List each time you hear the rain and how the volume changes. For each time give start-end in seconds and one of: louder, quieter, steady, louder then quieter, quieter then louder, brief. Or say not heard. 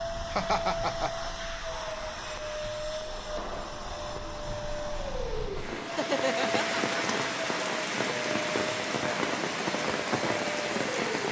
0.0-11.2 louder.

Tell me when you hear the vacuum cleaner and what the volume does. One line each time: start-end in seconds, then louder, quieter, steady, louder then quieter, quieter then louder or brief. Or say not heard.
0.0-11.2 steady.